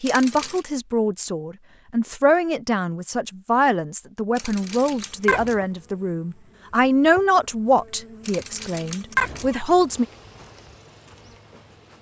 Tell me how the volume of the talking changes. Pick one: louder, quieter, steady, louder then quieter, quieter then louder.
louder then quieter.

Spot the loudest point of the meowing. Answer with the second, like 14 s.
9 s.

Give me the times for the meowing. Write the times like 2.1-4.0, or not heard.
0.1-0.6, 4.3-5.6, 8.2-9.6.